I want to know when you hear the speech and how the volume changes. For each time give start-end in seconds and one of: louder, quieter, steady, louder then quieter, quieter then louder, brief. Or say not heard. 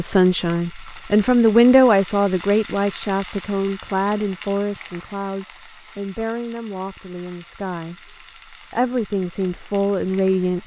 0.0-10.6 quieter then louder.